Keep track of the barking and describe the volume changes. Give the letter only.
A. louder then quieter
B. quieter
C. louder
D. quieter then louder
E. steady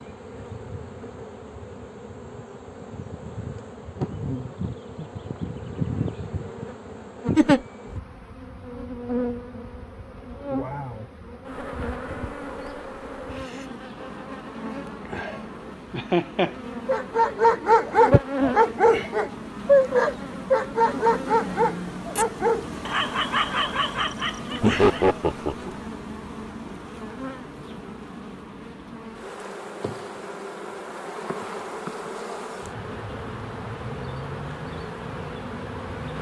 B.